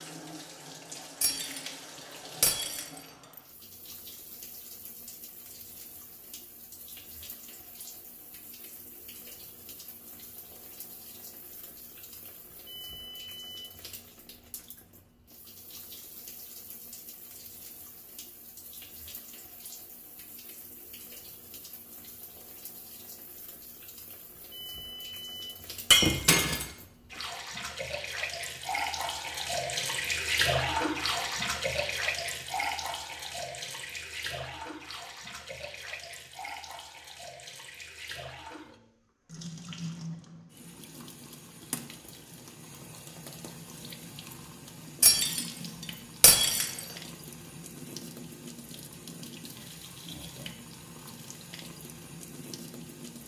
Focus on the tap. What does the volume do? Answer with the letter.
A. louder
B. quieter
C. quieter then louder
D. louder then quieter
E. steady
D.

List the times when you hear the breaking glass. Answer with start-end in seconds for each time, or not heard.
1.2-1.6, 2.4-3.4, 25.9-26.7, 45.0-45.5, 46.2-46.8.